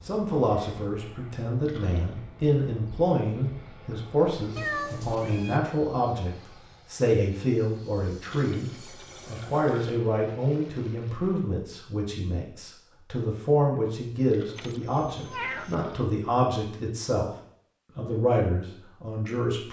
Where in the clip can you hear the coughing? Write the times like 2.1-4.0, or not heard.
not heard.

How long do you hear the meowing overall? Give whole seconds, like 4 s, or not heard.
2 s.